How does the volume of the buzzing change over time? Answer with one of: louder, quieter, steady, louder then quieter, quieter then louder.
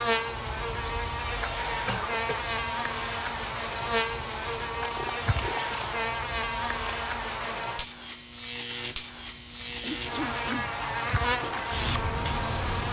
steady.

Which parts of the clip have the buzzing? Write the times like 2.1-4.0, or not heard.
0.0-12.8.